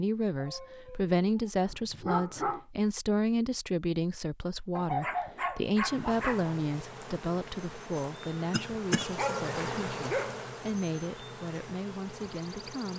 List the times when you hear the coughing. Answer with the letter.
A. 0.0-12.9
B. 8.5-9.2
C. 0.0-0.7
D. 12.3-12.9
B.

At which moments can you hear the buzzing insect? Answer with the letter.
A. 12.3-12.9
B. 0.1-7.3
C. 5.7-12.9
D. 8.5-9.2
C.